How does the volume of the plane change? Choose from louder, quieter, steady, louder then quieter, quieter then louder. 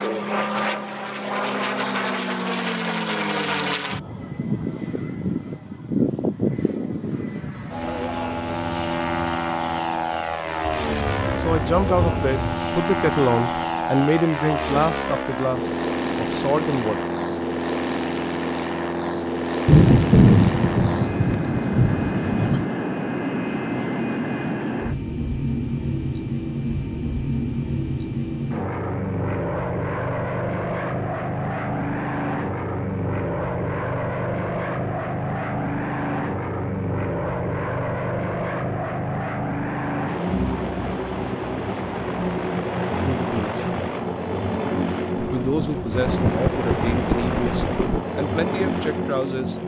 steady.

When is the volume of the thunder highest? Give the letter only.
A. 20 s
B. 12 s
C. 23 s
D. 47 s
A.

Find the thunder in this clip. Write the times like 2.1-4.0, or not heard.
10.7-12.6, 19.6-22.6, 45.1-48.0.